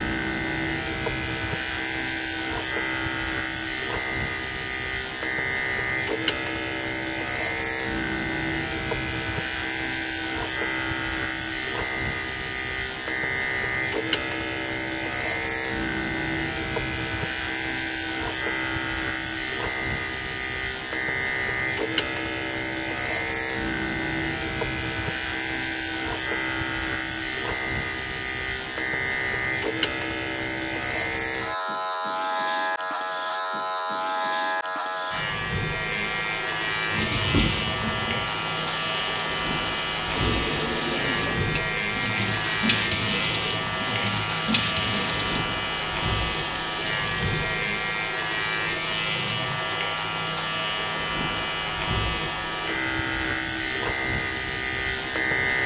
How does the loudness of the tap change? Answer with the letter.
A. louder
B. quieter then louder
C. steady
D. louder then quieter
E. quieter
C.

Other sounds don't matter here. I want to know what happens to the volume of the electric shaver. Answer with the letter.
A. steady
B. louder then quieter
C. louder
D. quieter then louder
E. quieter
A.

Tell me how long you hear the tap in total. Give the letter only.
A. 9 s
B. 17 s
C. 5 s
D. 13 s
D.